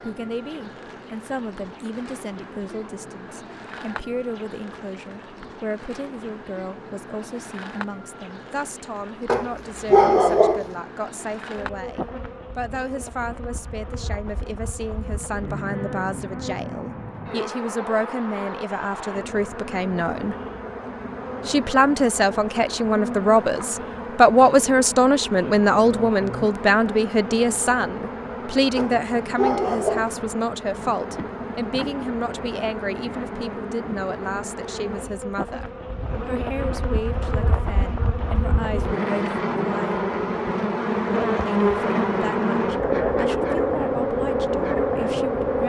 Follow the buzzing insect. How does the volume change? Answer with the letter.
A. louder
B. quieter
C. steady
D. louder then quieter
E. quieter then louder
A.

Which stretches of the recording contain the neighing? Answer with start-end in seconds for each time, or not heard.
not heard.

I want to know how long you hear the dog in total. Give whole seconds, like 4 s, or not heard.
3 s.